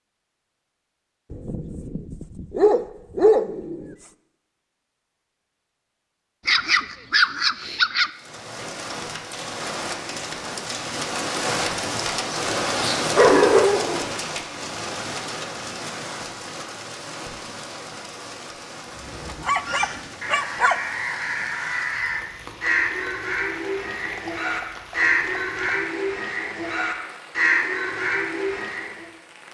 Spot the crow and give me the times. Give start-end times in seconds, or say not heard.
18.9-29.1.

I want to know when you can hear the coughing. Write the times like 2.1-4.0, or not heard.
not heard.